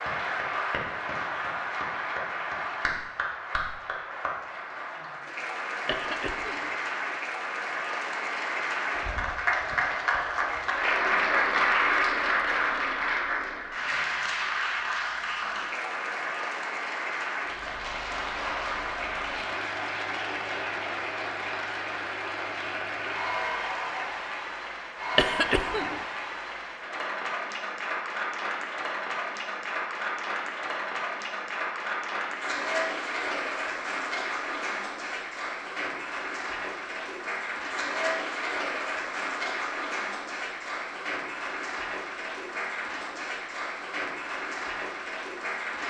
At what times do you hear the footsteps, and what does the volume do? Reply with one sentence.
The footsteps can't be heard in this clip.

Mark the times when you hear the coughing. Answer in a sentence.
The coughing can be heard from 5.8 to 6.7 s and from 25.1 to 26.0 s.